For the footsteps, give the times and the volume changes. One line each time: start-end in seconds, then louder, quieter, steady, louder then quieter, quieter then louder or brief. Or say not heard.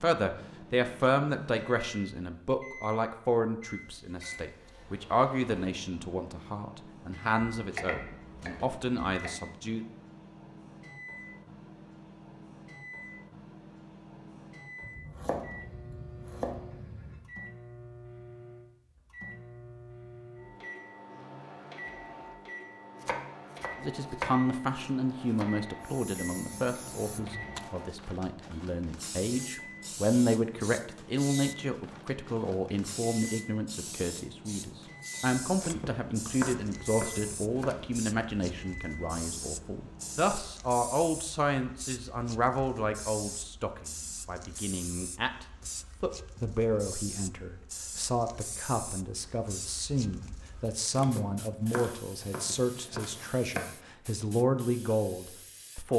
not heard.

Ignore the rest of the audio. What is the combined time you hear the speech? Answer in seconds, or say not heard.
42 s.